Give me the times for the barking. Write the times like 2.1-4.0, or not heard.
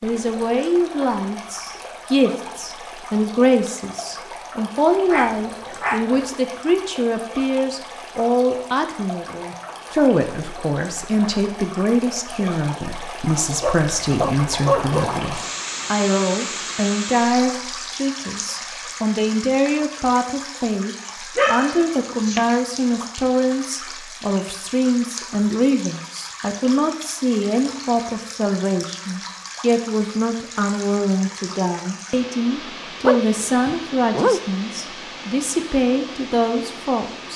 5.1-6.0, 13.6-15.2, 21.4-22.5, 33.0-34.5.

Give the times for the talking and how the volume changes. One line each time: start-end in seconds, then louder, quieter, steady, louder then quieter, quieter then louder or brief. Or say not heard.
0.0-37.3 steady.